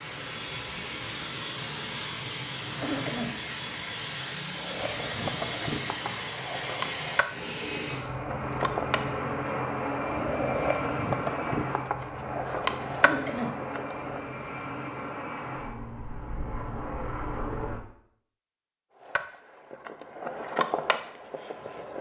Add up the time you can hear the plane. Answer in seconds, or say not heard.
18 s.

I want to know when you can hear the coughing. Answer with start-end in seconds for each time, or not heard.
2.8-3.3, 13.0-13.6.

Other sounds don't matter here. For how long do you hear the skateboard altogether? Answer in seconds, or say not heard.
13 s.